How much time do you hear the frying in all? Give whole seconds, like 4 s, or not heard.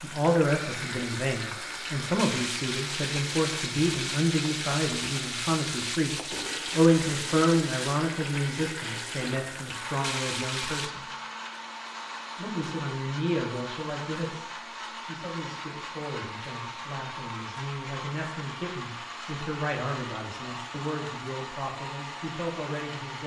11 s.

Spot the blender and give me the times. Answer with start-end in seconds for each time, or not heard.
0.1-23.2.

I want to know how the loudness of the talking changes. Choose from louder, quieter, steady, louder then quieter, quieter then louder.
quieter.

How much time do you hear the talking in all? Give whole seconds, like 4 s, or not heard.
22 s.